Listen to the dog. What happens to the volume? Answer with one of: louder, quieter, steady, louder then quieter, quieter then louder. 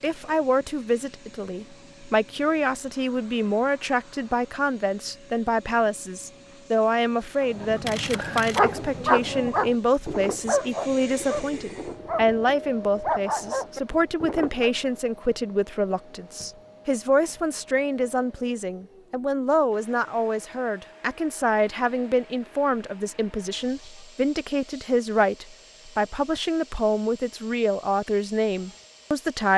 quieter then louder.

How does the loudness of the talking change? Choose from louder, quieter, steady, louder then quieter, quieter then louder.
steady.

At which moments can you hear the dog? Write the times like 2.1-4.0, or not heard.
7.5-14.7.